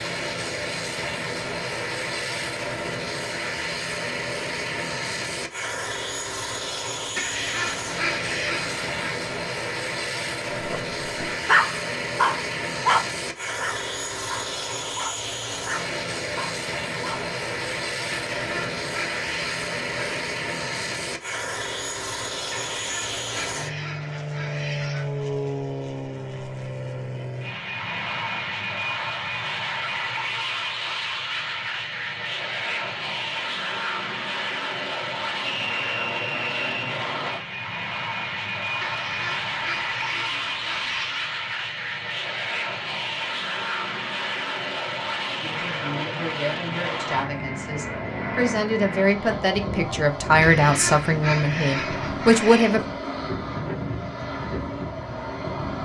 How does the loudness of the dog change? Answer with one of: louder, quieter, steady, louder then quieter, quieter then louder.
quieter.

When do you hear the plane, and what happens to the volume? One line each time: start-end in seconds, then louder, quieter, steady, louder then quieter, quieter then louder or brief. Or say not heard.
0.0-55.8 steady.